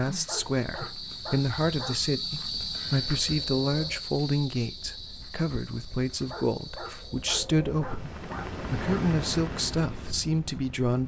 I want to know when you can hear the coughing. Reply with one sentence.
The coughing can't be heard in this clip.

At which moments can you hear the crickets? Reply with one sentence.
You can hear the crickets from 0.0 to 7.3 s.